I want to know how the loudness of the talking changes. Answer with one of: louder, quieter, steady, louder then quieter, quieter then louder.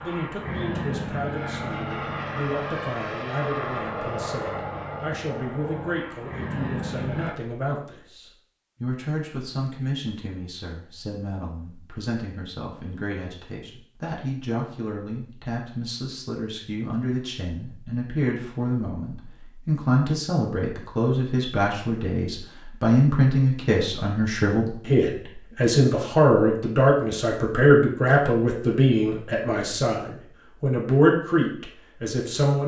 louder.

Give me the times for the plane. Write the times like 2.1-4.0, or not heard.
0.0-7.3.